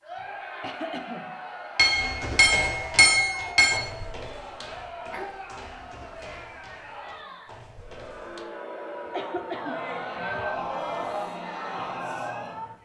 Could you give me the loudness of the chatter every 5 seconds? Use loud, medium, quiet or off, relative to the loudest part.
medium, medium, loud.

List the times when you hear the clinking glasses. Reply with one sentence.
You can hear the clinking glasses from 1.8 to 3.8 s.